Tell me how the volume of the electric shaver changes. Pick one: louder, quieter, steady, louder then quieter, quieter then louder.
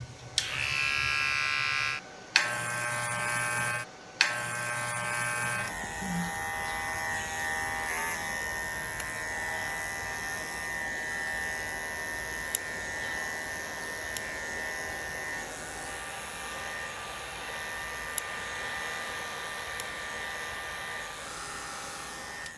quieter.